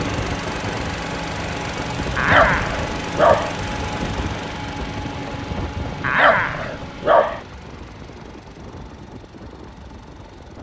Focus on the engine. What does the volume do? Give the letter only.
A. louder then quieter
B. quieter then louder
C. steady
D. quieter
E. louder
D.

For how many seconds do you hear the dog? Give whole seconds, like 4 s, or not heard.
3 s.